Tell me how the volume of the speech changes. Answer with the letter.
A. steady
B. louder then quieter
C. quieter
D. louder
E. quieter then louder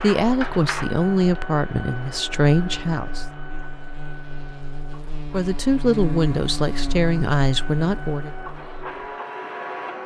A.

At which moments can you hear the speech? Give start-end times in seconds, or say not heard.
0.0-3.2, 5.3-8.3.